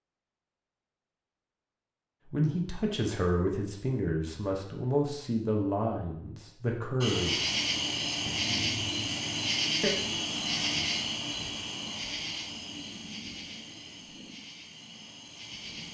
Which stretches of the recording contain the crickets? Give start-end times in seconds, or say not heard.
7.0-15.8.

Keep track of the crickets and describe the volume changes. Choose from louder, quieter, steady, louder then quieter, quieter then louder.
quieter.